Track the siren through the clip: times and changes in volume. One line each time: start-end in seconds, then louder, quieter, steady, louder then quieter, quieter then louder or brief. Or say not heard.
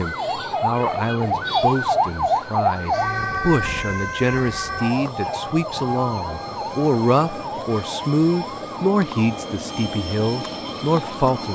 0.0-11.5 quieter.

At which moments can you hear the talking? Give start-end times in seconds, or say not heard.
0.0-11.5.